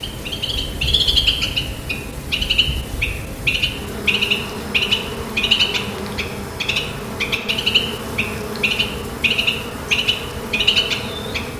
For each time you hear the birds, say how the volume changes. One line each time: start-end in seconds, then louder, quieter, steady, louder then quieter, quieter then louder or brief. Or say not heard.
0.0-11.5 steady.